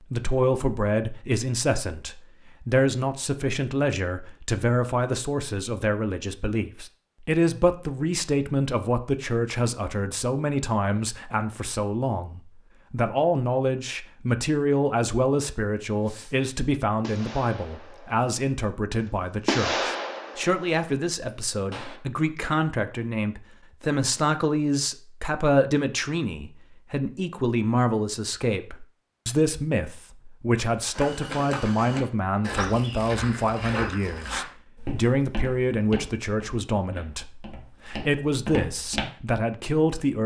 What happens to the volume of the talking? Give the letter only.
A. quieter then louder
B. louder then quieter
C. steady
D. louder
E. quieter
C.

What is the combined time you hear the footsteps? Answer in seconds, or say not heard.
8 s.